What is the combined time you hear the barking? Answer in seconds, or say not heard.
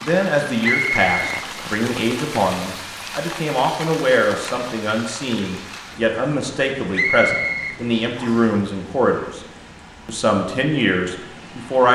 not heard.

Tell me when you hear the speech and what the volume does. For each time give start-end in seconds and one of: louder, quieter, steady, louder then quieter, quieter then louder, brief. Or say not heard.
0.0-9.4 steady
10.1-11.8 brief.